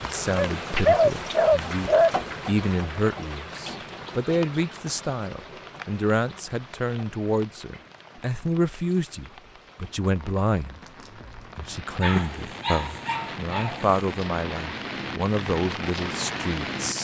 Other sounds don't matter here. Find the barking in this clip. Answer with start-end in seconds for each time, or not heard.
0.3-2.1, 12.0-14.2.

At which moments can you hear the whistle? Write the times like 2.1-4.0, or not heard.
not heard.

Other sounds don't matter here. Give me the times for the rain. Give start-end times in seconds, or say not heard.
0.0-17.0.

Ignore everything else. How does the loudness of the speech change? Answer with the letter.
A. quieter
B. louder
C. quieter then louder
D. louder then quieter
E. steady
E.